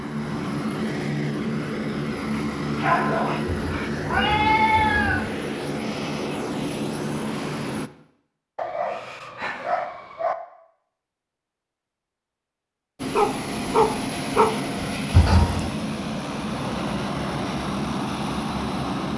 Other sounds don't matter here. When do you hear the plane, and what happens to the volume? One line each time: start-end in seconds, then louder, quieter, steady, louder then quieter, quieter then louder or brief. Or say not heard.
0.0-7.9 steady
12.9-19.1 steady.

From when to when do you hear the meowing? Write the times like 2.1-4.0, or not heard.
3.5-5.3, 15.1-15.8.